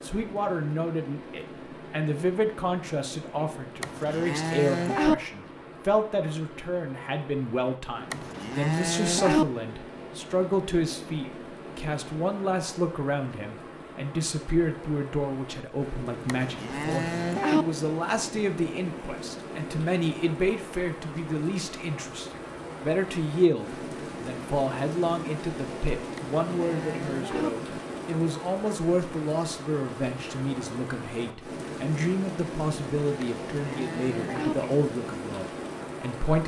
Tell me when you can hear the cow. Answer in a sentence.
You can hear the cow from 3.8 to 5.2 s, from 8.1 to 9.4 s, from 16.2 to 17.6 s, from 26.1 to 27.5 s and from 33.2 to 34.5 s.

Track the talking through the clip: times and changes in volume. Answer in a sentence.
The talking can be heard from 0.0 to 36.4 s, at a steady volume.